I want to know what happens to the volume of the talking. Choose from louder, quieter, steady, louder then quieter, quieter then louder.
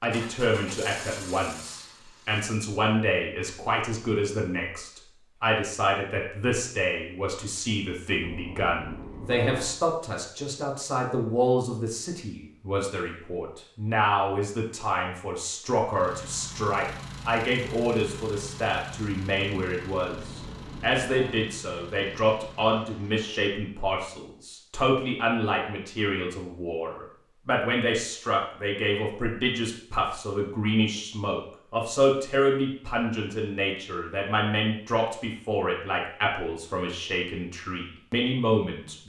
steady.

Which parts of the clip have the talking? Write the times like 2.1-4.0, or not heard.
0.0-39.0.